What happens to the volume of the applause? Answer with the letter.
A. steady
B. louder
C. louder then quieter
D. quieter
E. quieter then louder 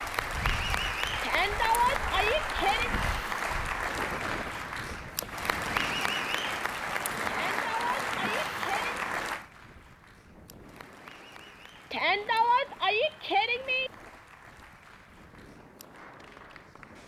D.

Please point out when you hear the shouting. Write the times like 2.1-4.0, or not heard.
1.2-2.9, 7.2-9.0, 11.9-13.9.